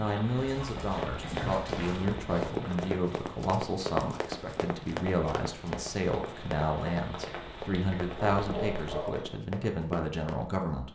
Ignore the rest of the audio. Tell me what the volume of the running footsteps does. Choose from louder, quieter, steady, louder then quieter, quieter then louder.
quieter.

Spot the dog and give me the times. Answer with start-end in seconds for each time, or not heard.
0.3-2.5, 8.4-9.2.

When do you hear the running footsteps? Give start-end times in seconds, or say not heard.
0.8-10.4.